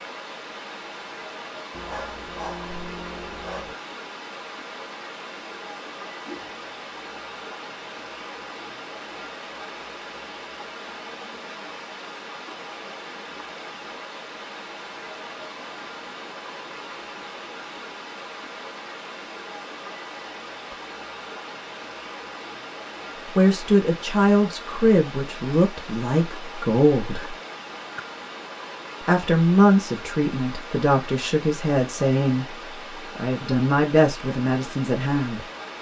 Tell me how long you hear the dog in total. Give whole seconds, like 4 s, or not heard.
2 s.